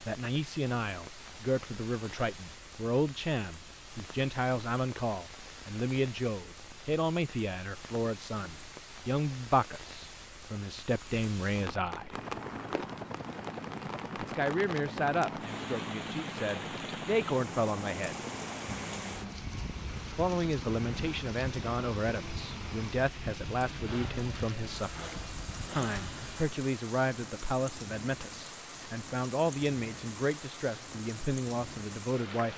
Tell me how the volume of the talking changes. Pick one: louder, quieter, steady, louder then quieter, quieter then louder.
steady.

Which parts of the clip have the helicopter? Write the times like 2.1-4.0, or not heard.
12.1-26.4.